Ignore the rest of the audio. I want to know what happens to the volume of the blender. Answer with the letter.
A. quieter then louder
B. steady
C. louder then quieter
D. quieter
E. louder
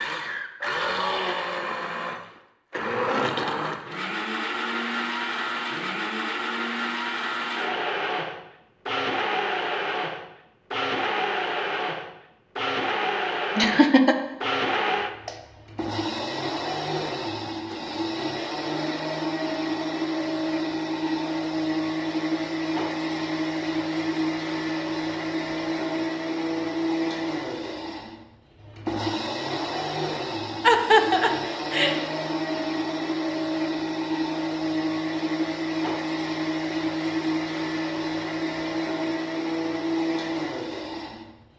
B.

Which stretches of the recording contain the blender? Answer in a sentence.
The blender can be heard from 0.0 to 41.5 s.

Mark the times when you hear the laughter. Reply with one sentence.
You can hear the laughter from 13.6 to 14.2 s and from 30.6 to 31.9 s.